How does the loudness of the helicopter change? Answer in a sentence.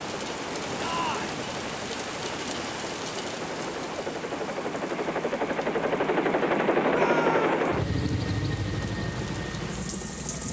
The volume of the helicopter goes up, then down.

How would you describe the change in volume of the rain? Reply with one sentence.
The volume of the rain goes down, then up.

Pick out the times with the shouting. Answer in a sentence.
You can hear the shouting from 0.8 to 1.4 s and from 6.9 to 7.6 s.